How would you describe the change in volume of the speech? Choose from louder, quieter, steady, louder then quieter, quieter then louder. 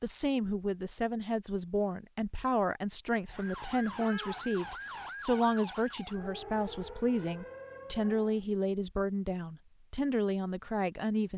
steady.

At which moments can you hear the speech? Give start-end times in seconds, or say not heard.
0.0-11.3.